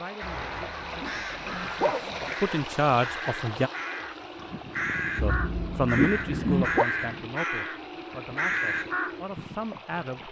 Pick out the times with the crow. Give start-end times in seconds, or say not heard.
0.1-9.2.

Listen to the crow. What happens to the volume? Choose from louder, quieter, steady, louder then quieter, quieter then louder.
louder.